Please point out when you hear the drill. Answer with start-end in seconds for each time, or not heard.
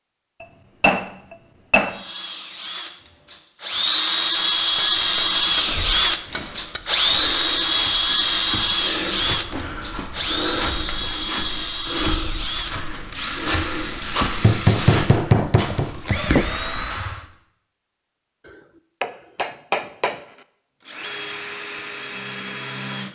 1.9-17.2, 20.9-23.1.